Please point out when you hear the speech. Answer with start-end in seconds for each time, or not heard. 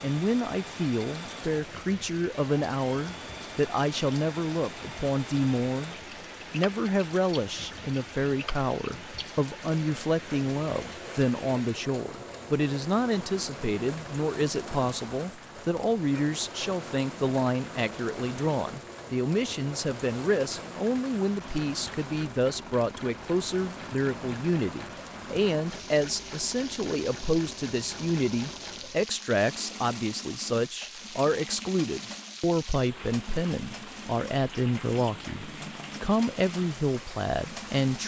0.0-38.0.